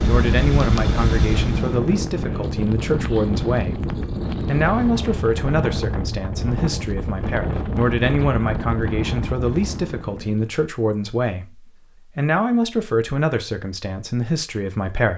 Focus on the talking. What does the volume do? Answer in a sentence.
The volume of the talking stays about the same.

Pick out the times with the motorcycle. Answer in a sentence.
You can hear the motorcycle from 0.0 to 1.9 s.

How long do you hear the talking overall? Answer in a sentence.
The talking can be heard for 15 seconds in total.